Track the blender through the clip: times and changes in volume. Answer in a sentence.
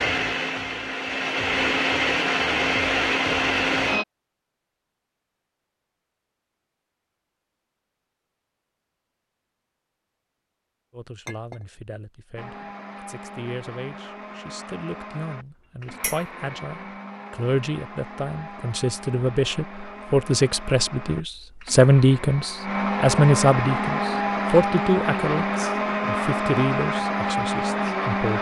You can hear the blender from 0.0 to 4.0 s, getting louder; and from 12.3 to 28.3 s, getting louder.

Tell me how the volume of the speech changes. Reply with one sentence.
The volume of the speech goes up, then down.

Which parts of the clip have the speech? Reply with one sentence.
The speech can be heard from 10.9 to 28.3 s.